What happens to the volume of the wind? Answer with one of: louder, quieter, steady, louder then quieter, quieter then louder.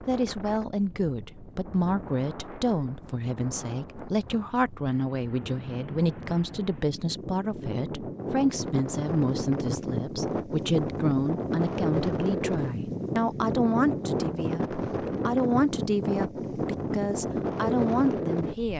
louder.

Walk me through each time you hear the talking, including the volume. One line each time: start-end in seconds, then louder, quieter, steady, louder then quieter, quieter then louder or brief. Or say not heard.
0.1-18.7 steady.